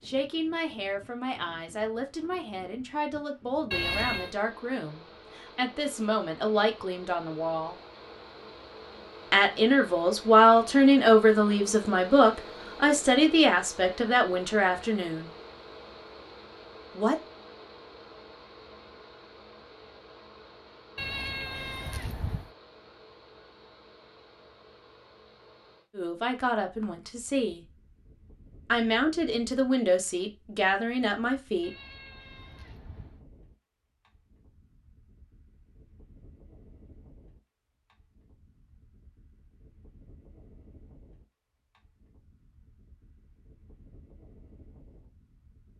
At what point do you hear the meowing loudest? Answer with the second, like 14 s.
4 s.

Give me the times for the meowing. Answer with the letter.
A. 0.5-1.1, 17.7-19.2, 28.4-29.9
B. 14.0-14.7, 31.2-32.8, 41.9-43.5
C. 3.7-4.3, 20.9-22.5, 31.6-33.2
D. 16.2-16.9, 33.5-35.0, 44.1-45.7
C.